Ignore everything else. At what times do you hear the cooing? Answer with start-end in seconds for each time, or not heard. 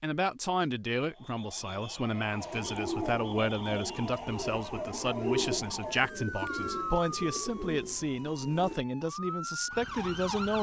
2.5-8.8.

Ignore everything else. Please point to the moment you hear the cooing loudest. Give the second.
5 s.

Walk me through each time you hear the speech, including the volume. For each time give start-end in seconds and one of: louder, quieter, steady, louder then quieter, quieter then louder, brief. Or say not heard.
0.0-10.5 steady.